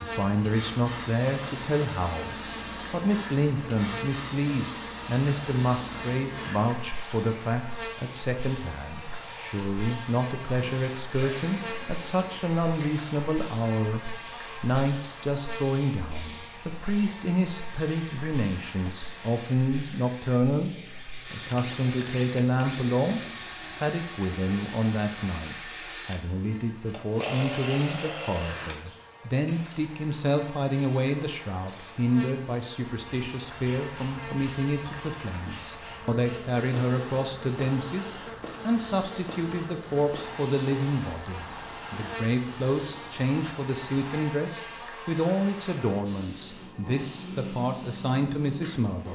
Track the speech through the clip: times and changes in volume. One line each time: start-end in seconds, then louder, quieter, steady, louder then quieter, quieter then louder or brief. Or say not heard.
0.0-49.1 steady.